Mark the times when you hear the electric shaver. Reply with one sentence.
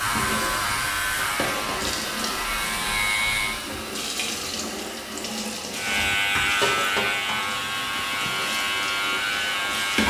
The electric shaver can be heard from 0.0 to 3.6 s and from 5.7 to 10.0 s.